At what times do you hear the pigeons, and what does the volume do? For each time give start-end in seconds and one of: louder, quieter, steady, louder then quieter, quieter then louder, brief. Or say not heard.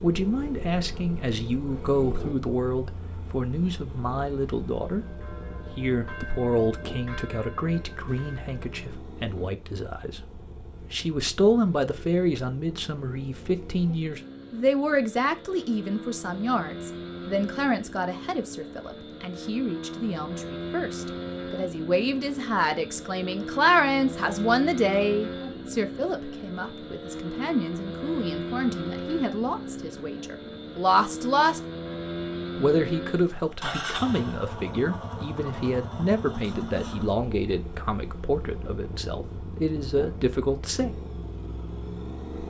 not heard.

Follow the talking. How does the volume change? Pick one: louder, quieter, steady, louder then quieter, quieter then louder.
steady.